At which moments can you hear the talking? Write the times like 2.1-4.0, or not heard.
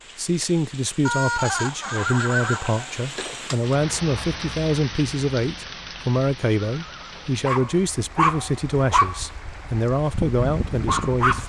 0.1-11.4.